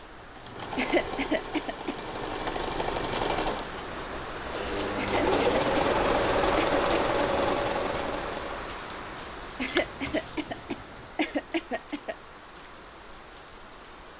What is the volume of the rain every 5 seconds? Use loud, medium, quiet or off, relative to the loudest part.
medium, loud, quiet.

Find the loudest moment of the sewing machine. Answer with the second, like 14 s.
6 s.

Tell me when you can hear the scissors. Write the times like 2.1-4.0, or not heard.
9.6-11.1.